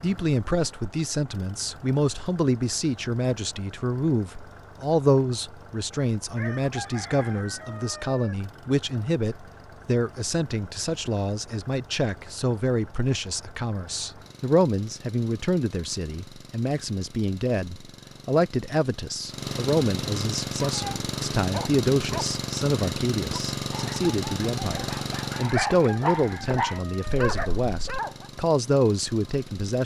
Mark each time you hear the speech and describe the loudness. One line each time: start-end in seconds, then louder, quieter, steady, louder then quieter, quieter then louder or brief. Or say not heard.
0.0-29.8 steady.